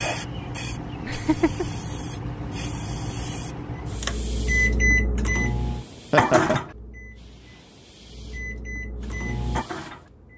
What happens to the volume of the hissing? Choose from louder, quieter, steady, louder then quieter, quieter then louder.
quieter.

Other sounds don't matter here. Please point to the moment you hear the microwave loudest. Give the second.
5 s.